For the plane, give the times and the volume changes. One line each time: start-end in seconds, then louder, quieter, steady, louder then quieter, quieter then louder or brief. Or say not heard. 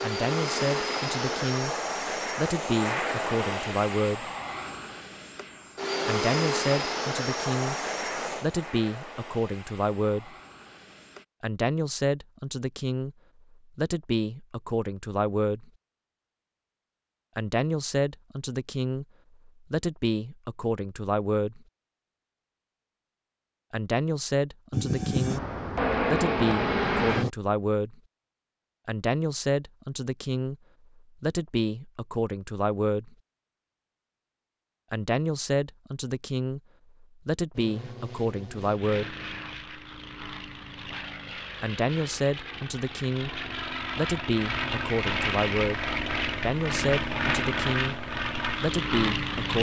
0.0-11.2 quieter
24.7-27.3 brief
37.5-49.5 louder.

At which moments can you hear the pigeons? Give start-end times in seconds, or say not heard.
not heard.